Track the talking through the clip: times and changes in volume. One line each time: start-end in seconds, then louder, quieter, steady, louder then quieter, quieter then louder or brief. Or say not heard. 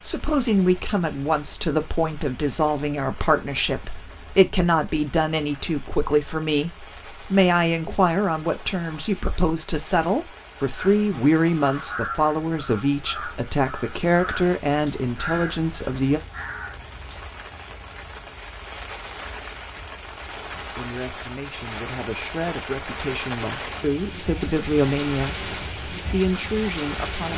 0.0-16.2 steady
20.6-27.3 louder.